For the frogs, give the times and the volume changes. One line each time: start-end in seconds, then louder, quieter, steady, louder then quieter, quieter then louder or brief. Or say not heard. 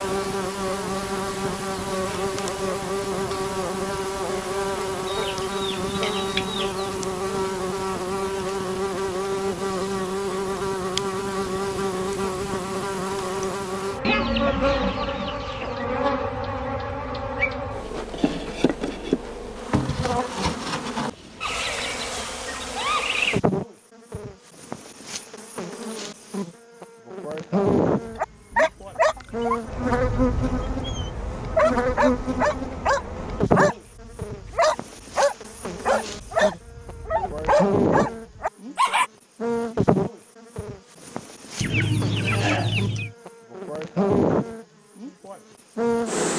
not heard.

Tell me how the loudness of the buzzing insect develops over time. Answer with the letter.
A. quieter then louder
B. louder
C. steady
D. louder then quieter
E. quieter
C.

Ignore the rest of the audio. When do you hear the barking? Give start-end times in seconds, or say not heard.
28.1-39.1.